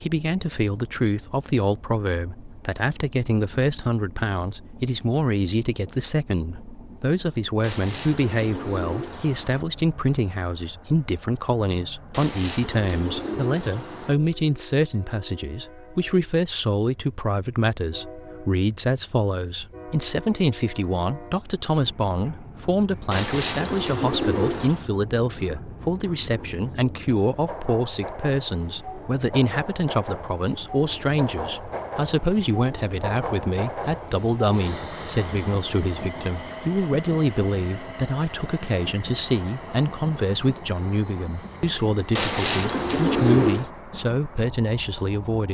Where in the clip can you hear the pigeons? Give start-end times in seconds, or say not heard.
7.6-9.7, 12.1-14.2, 23.1-24.9, 42.1-43.7.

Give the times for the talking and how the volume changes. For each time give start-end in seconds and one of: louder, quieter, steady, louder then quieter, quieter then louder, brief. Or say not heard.
0.0-45.4 steady.